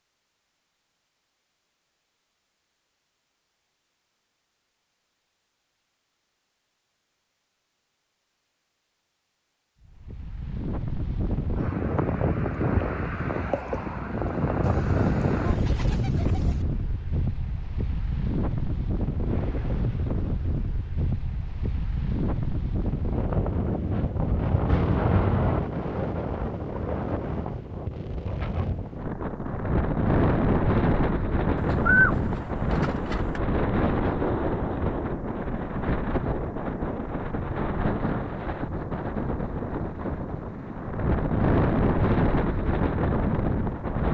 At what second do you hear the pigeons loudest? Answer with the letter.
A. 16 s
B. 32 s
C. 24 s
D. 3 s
B.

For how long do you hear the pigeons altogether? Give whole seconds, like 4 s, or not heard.
4 s.